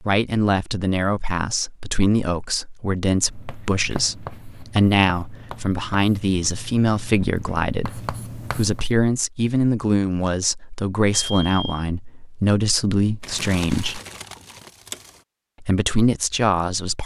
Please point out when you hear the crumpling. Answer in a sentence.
The crumpling can be heard from 13.2 to 15.2 s.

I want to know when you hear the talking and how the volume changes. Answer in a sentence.
The talking can be heard from 0.0 to 14.0 s, at a steady volume; and briefly from 15.6 to 17.0 s.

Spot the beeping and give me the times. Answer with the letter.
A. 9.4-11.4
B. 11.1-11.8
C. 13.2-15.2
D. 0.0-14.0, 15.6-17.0
B.